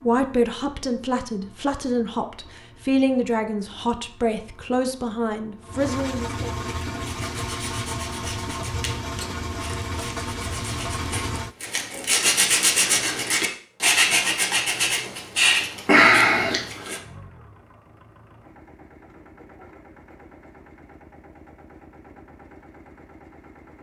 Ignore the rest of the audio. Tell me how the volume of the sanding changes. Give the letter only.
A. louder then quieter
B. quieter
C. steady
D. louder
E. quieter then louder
D.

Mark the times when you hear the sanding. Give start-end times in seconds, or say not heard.
6.9-17.0.